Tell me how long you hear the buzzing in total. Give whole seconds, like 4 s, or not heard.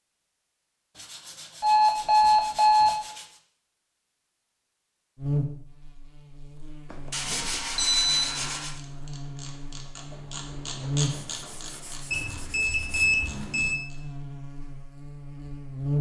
11 s.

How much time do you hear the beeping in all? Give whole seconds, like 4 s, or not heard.
5 s.